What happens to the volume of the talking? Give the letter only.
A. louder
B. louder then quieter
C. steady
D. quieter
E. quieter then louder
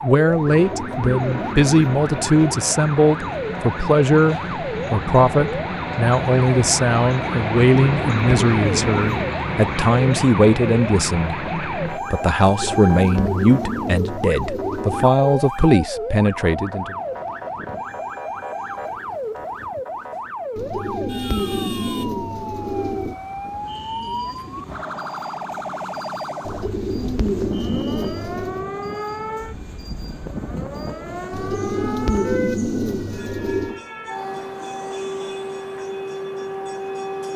C.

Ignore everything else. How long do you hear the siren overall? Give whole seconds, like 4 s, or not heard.
37 s.